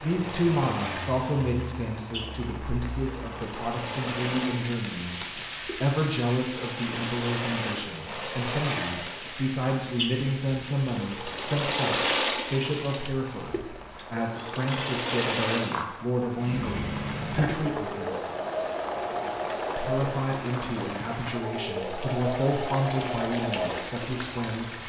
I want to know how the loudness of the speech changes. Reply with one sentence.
The volume of the speech stays about the same.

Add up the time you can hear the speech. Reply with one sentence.
The speech can be heard for 23 seconds in total.